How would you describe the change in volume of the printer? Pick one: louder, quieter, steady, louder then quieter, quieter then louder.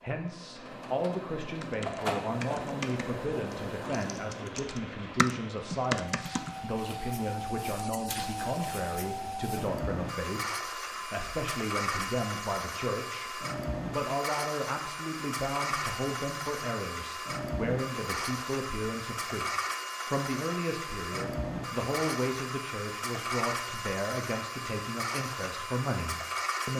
steady.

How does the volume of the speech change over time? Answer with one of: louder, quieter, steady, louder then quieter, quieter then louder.
steady.